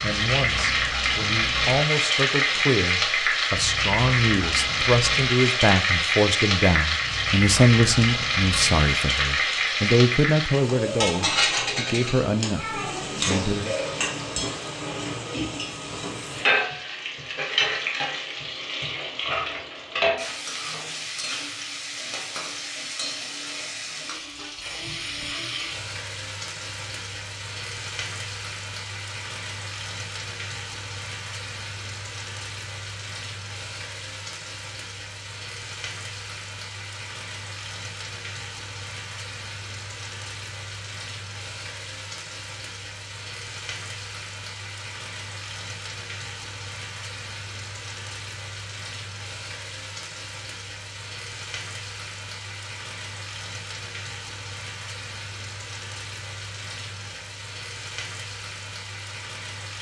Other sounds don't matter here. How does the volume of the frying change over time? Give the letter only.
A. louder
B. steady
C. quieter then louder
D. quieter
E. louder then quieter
D.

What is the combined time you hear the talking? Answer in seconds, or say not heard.
14 s.